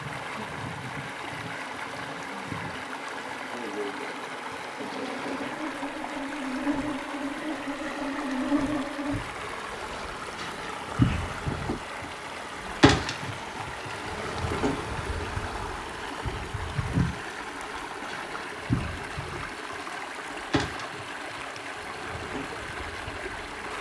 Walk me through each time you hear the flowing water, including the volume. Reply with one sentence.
The flowing water can be heard from 0.0 to 23.7 s, at a steady volume.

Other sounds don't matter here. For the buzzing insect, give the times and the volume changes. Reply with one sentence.
The buzzing insect can be heard from 0.0 to 23.7 s, getting louder then quieter.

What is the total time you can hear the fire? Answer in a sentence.
You can't hear the fire here.